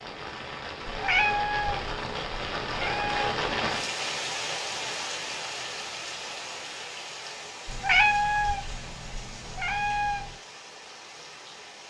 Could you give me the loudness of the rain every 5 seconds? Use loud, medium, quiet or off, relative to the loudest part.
loud, medium, quiet.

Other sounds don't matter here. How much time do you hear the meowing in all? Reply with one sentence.
The meowing can be heard for 5 seconds in total.